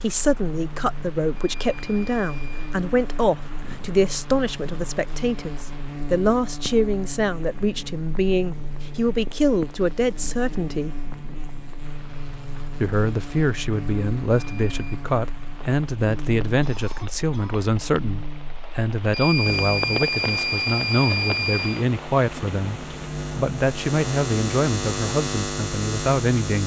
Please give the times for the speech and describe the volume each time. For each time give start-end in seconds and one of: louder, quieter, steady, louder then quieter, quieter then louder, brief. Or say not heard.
0.0-11.0 steady
12.8-26.6 steady.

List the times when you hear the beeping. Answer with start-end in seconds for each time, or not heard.
1.4-2.8, 14.3-14.8, 19.1-21.9.